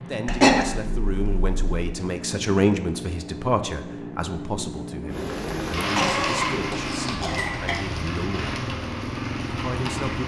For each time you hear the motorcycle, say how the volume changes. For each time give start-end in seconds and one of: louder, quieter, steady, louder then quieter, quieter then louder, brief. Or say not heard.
0.0-10.2 steady.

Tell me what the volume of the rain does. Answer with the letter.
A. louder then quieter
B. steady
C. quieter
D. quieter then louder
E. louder
C.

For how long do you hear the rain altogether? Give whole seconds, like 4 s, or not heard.
5 s.